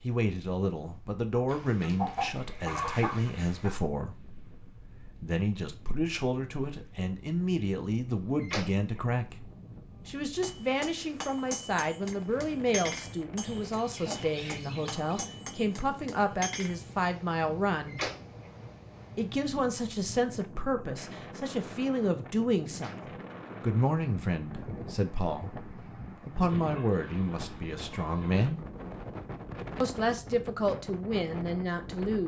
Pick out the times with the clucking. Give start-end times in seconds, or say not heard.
1.5-3.7, 13.4-15.2, 26.4-28.5.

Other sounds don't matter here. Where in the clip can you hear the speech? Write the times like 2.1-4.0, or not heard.
0.0-18.0, 19.1-28.6, 29.8-32.2.